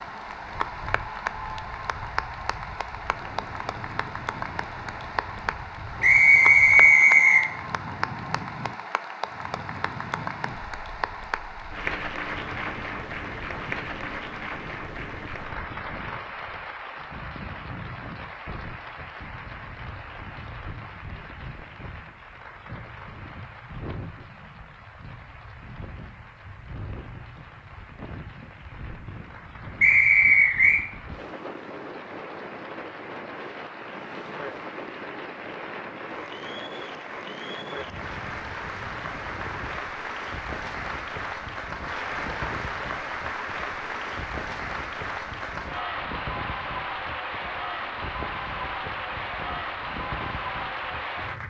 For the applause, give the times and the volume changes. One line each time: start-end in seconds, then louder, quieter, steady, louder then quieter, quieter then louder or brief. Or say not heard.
0.0-51.4 quieter then louder.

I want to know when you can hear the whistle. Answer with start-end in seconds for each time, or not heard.
6.0-7.5, 29.8-30.8.